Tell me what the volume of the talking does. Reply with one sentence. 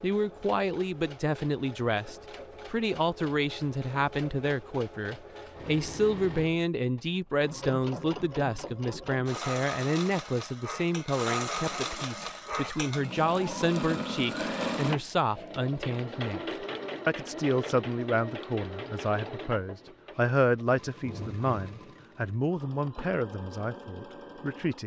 The loudness of the talking stays about the same.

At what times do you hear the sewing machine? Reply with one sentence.
You can hear the sewing machine from 0.0 to 24.8 s.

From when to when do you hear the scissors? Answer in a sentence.
The scissors can't be heard in this clip.